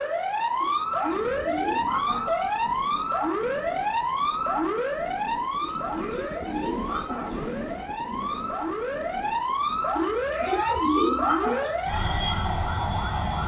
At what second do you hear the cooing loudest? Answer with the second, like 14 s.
11 s.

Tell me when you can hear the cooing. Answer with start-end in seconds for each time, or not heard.
0.6-2.4, 5.6-7.4, 9.9-11.8.